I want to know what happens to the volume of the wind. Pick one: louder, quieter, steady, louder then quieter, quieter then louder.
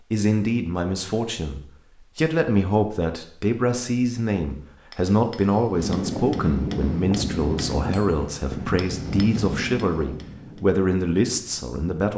quieter.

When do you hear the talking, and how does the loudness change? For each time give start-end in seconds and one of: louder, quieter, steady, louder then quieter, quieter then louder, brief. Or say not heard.
0.1-12.1 steady.